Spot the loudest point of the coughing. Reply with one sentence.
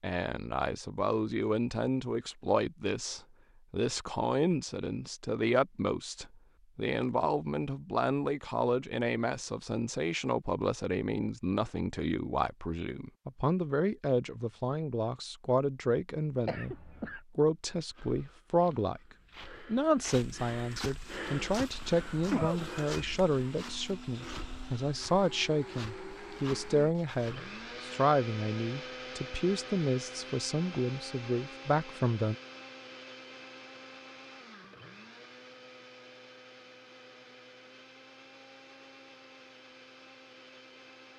The volume of the coughing peaks at 22 seconds.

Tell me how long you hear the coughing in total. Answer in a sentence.
You can hear the coughing for 2 seconds altogether.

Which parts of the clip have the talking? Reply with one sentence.
You can hear the talking from 0.0 to 19.0 s and from 19.6 to 32.4 s.